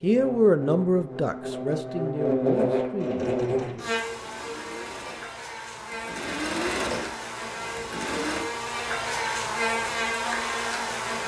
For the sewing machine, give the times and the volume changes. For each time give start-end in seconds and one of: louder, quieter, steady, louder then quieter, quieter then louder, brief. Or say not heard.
3.0-8.4 louder then quieter.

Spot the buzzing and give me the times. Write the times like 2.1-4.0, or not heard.
0.0-11.2.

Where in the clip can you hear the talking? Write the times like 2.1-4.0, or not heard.
0.0-3.3.